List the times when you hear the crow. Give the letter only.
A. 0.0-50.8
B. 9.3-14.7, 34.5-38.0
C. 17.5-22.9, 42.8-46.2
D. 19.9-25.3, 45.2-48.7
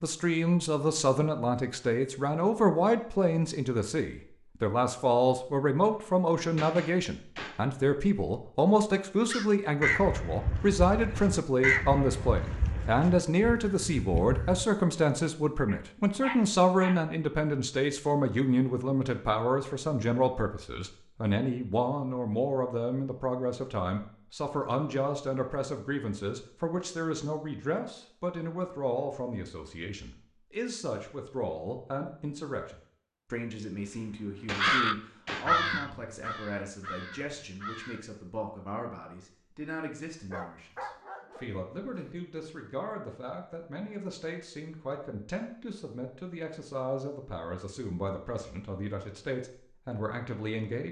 B.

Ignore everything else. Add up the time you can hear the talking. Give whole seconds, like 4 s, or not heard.
51 s.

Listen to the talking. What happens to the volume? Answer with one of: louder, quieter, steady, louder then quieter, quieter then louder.
quieter.